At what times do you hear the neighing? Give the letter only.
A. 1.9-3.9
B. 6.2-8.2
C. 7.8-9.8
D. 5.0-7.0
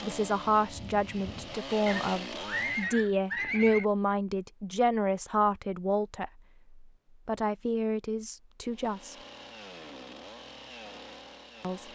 A.